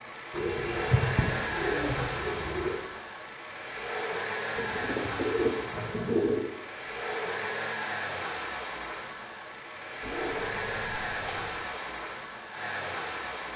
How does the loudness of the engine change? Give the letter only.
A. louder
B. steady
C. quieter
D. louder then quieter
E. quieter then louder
B.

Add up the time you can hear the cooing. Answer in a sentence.
You can hear the cooing for 6 seconds altogether.